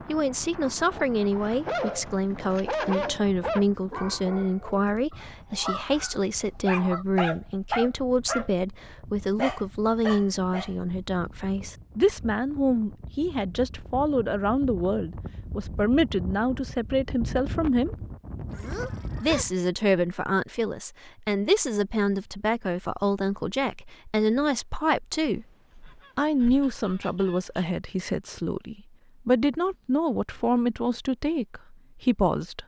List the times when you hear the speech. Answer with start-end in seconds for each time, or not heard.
0.1-17.9, 19.2-25.4, 26.1-32.6.